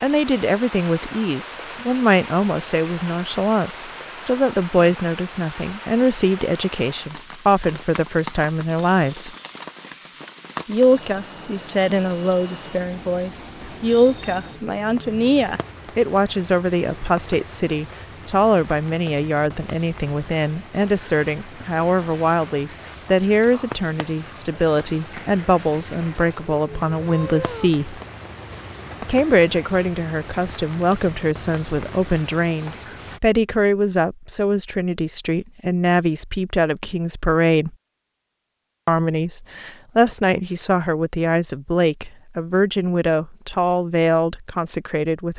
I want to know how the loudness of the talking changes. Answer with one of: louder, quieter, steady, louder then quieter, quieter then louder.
steady.